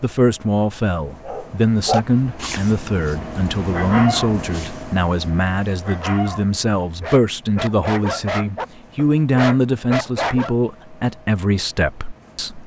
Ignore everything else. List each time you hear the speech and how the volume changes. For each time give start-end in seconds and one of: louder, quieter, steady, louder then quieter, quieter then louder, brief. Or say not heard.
0.0-12.6 steady.